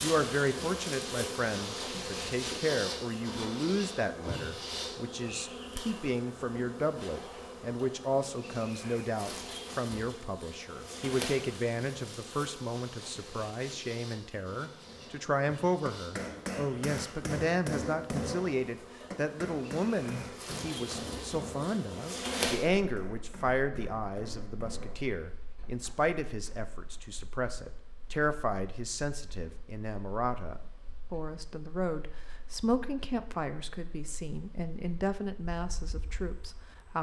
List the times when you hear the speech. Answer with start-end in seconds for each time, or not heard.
0.0-36.9.